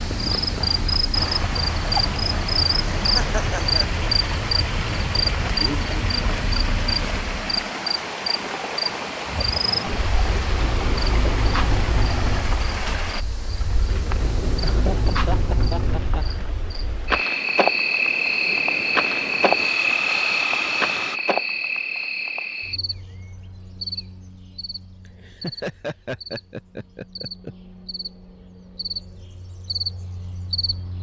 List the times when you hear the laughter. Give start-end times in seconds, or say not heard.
3.0-4.0, 14.6-16.4, 25.1-27.6.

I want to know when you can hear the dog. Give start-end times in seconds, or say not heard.
not heard.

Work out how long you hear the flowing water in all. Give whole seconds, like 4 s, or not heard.
21 s.